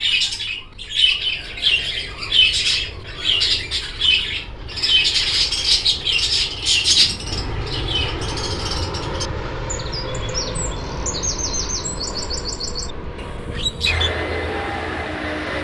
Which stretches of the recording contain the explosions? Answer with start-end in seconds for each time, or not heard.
not heard.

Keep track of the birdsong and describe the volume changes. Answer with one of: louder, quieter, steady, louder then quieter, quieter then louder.
quieter.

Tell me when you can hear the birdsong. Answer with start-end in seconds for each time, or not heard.
0.0-15.5.